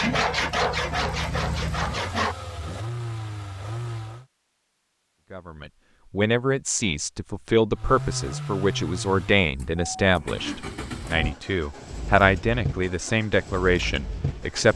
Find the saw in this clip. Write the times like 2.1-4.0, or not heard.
0.0-2.4.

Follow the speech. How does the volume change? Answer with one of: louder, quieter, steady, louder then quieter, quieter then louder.
steady.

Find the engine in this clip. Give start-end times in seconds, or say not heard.
0.1-4.2, 7.7-14.7.